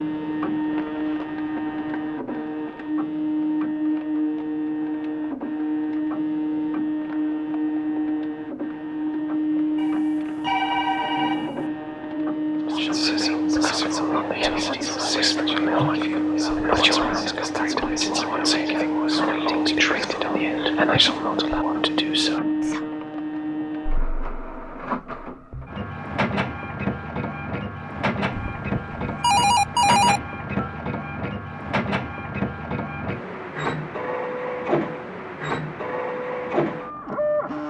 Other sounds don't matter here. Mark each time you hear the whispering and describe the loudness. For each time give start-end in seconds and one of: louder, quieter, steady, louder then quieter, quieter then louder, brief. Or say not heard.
12.7-22.8 steady.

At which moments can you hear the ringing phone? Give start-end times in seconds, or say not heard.
9.8-11.7, 28.4-30.7.